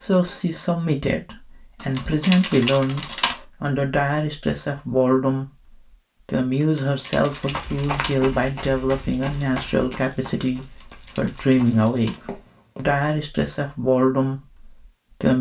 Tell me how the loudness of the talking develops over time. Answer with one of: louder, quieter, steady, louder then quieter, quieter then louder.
steady.